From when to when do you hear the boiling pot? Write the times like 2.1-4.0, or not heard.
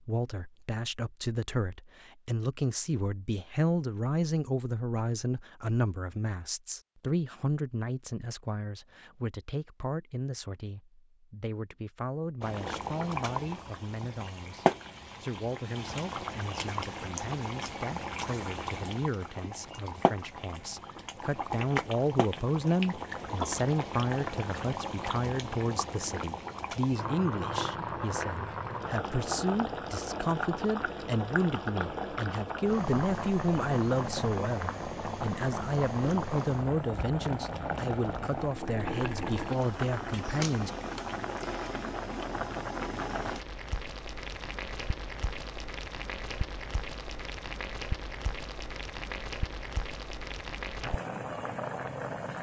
12.4-52.3.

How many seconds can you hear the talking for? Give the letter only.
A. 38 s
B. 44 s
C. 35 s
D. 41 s
D.